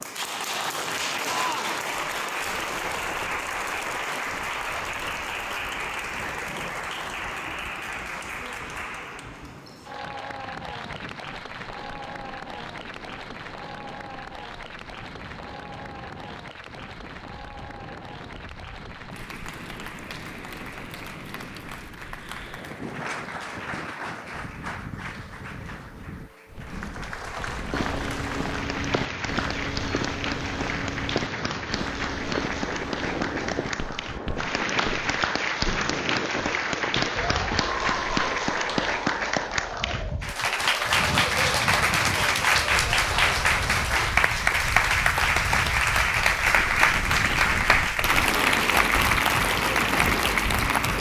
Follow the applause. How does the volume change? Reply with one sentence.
The loudness of the applause goes down, then up.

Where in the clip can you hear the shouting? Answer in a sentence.
You can hear the shouting from 1.2 to 1.8 s.